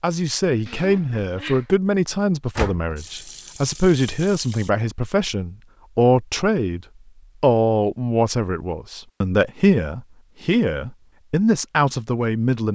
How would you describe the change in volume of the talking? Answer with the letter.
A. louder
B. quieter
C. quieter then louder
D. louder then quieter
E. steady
E.